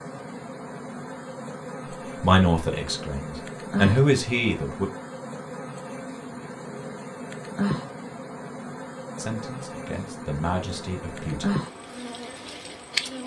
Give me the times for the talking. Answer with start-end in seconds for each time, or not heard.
2.1-4.9, 9.2-11.6.